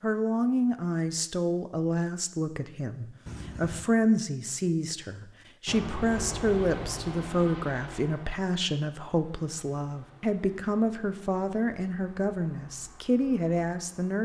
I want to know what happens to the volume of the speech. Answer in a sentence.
The loudness of the speech stays about the same.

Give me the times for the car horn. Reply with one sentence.
You can hear the car horn from 3.2 to 3.9 s.